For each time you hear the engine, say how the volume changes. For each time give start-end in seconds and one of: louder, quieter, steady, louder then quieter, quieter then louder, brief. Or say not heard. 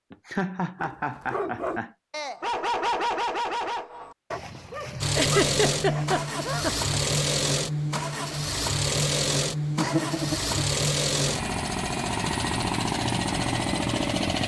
5.0-14.4 steady.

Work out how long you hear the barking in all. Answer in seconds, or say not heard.
6 s.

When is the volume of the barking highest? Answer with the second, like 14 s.
3 s.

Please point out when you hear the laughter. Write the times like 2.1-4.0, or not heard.
0.1-1.9, 5.2-7.0, 9.8-10.6.